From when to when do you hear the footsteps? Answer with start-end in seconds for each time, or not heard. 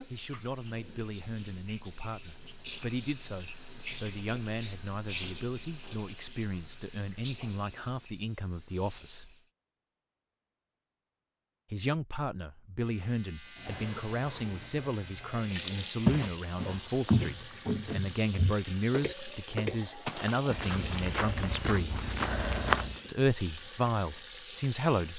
16.1-22.9.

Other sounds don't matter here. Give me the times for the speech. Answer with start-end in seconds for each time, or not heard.
0.1-9.3, 11.7-22.0, 23.1-25.1.